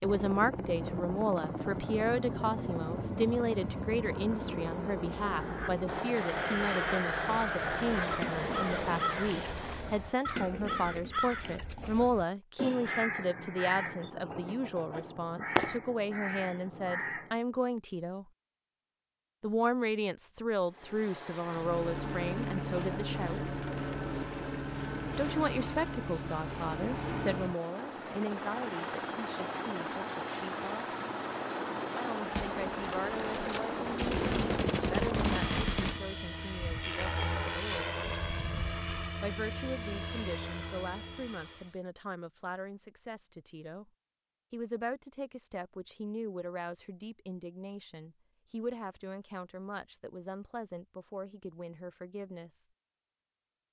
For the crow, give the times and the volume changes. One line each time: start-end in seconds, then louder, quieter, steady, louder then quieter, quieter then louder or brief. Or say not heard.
5.2-17.4 steady.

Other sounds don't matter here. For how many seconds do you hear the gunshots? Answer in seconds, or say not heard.
4 s.